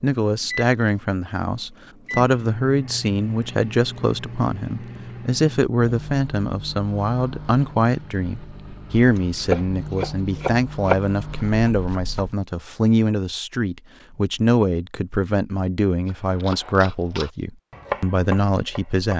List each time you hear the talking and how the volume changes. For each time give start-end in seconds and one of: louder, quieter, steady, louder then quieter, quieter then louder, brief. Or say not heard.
0.0-19.1 steady.